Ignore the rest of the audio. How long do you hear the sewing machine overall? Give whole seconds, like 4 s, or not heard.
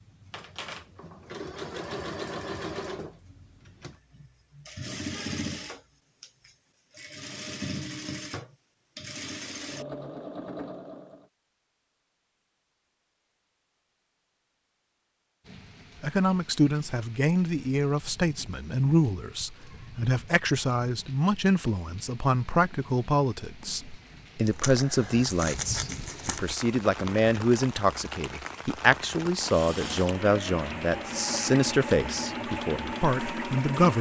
16 s.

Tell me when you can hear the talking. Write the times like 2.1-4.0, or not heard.
16.0-33.9.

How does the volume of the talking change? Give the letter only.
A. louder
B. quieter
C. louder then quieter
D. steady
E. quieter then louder
D.